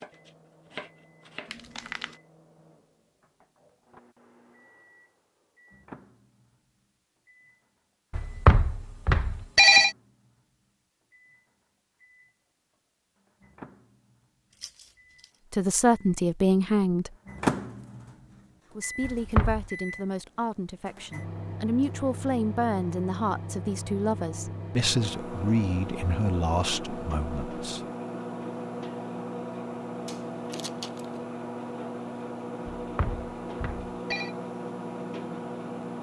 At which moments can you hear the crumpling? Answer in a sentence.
The crumpling can be heard from 1.4 to 2.1 s, from 14.5 to 15.3 s and from 30.1 to 31.2 s.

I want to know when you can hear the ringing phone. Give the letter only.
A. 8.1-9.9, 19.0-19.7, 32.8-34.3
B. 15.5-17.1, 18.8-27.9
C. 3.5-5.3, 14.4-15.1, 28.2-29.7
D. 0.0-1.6
A.